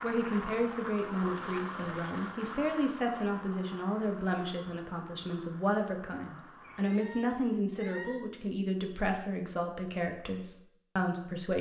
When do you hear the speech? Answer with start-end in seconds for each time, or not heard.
0.0-11.5.